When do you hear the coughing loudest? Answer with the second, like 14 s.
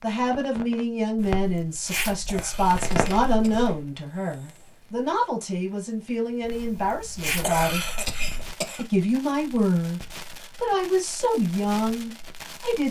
8 s.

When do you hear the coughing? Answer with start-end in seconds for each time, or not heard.
2.2-4.8, 7.4-8.8.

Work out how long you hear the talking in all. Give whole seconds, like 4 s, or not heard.
12 s.